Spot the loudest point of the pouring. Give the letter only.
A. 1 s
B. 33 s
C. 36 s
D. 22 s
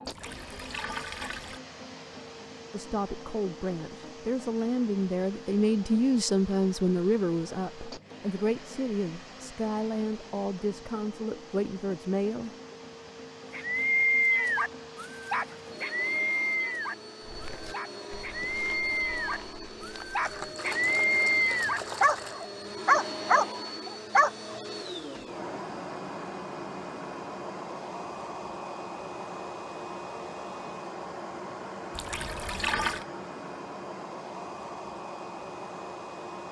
B.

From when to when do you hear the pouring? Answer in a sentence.
The pouring can be heard from 0.1 to 1.6 s, from 20.2 to 22.5 s and from 31.9 to 33.0 s.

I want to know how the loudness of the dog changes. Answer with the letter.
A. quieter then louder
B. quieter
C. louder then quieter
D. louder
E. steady
A.